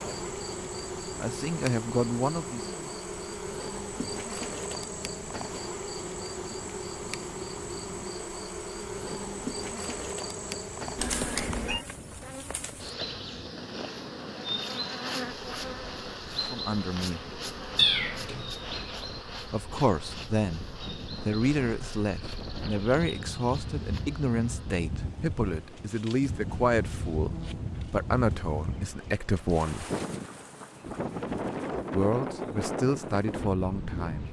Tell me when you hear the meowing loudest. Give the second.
18 s.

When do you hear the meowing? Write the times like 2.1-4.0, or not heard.
10.9-11.8, 17.8-18.5.